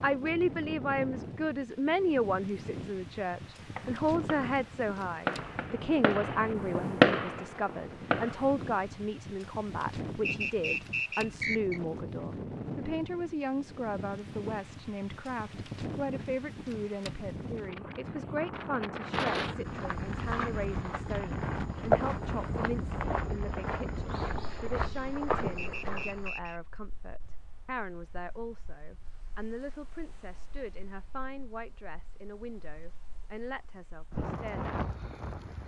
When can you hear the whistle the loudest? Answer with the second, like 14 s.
11 s.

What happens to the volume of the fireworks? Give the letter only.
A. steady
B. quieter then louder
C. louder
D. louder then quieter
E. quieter
D.